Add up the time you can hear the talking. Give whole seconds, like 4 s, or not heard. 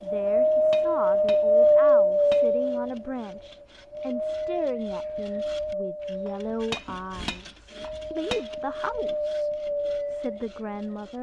11 s.